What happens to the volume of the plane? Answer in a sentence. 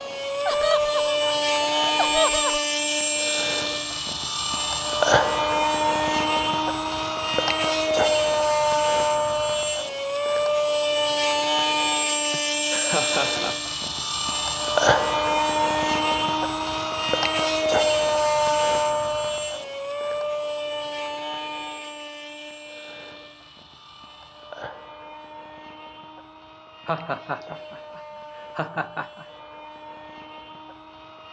The volume of the plane goes down.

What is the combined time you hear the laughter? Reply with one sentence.
The laughter can be heard for 6 seconds in total.